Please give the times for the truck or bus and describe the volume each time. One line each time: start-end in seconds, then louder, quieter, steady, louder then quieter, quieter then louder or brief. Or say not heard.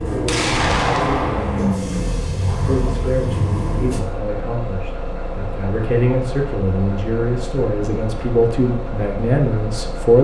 0.0-10.1 quieter.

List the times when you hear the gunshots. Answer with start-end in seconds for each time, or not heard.
0.2-1.8.